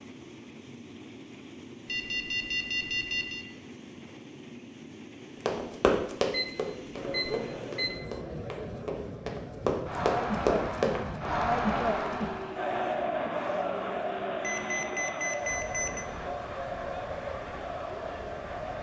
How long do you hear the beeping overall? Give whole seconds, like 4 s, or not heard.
5 s.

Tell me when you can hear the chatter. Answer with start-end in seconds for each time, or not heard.
6.9-18.7.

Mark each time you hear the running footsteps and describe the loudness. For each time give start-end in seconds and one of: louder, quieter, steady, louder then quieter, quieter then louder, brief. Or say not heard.
5.5-11.3 quieter then louder.